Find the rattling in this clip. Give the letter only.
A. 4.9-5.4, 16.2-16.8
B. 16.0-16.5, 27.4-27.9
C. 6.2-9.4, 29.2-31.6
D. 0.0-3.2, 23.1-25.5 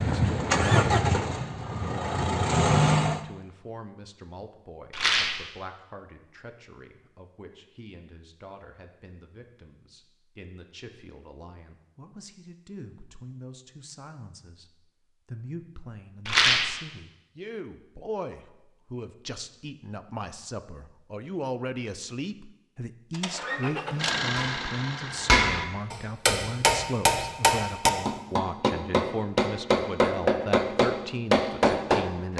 A.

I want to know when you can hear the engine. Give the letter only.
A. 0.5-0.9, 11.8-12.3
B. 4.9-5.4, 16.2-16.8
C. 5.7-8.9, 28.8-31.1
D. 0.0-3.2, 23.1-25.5
D.